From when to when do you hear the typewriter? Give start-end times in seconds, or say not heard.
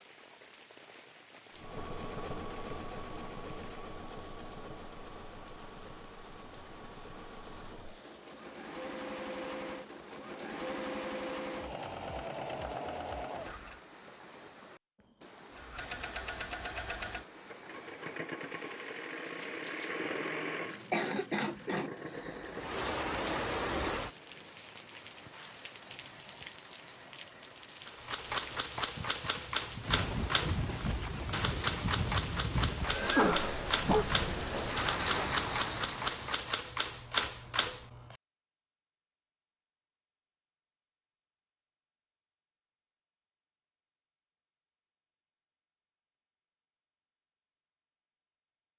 27.9-38.1.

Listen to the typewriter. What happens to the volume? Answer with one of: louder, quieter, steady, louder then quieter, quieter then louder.
steady.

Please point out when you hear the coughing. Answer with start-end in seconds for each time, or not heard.
20.9-22.4, 33.1-34.0.